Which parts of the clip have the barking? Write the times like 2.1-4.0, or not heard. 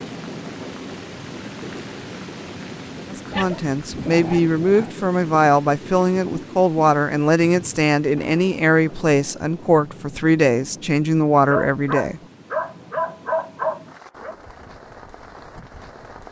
3.3-4.9, 11.5-14.3.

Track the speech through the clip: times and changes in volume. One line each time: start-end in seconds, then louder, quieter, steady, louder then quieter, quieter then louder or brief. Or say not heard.
3.1-12.2 steady.